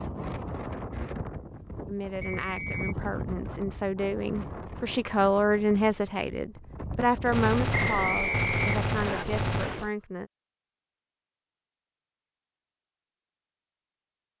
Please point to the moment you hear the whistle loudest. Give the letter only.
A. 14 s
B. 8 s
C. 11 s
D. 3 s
B.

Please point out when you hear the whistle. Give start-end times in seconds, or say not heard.
2.2-3.0, 7.7-9.2.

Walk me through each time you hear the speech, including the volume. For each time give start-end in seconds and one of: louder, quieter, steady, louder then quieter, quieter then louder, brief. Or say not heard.
1.9-10.3 louder then quieter.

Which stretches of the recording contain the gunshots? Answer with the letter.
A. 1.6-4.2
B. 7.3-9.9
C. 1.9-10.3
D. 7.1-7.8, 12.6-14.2
B.